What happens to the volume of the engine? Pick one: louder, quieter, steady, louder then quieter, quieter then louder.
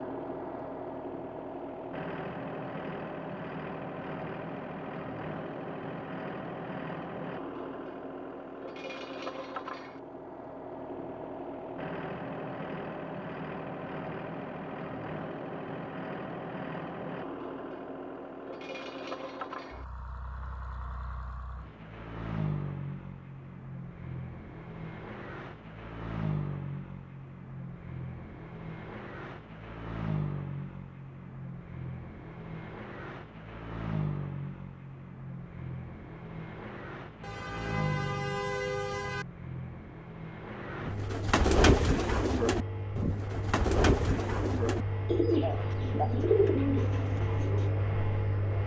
steady.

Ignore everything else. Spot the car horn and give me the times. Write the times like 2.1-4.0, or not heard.
37.2-39.2.